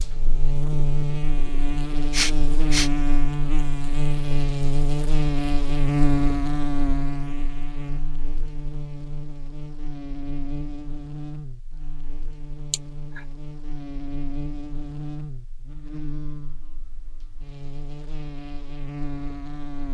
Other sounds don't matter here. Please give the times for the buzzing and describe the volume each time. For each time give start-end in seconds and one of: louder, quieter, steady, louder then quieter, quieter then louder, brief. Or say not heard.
0.0-19.8 quieter.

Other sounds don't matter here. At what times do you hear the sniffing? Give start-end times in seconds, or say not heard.
2.1-2.9, 12.7-13.2.